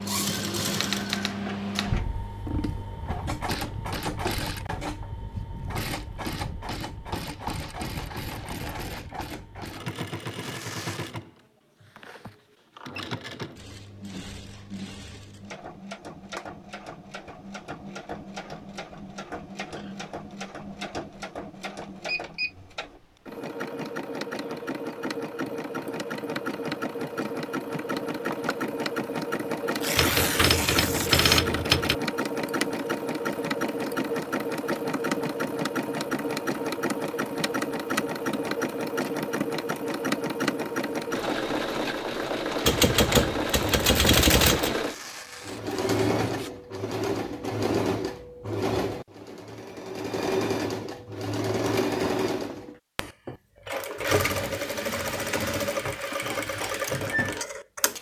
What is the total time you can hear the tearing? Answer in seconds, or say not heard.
4 s.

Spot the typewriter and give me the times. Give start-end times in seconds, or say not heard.
0.7-2.0, 29.9-31.9, 42.6-44.8.